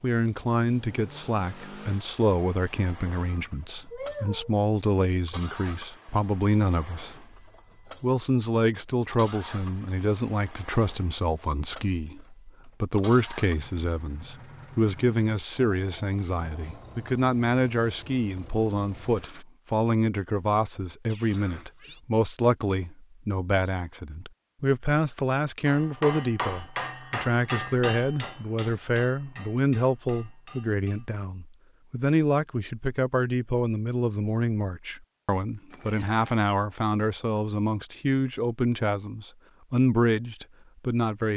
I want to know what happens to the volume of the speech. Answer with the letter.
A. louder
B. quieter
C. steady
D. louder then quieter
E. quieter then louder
C.